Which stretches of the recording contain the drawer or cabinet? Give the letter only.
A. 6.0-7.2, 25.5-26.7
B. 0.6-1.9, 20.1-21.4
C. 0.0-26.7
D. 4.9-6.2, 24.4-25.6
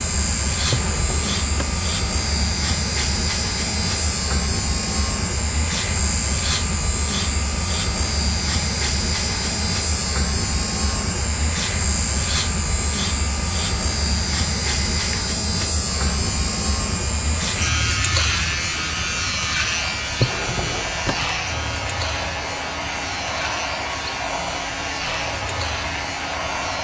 B.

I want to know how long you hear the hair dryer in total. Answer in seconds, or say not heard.
27 s.